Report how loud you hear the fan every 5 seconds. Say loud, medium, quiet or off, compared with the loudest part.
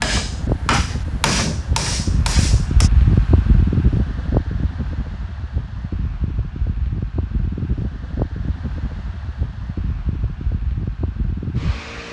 loud, medium, medium.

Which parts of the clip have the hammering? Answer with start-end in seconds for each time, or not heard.
0.0-2.9.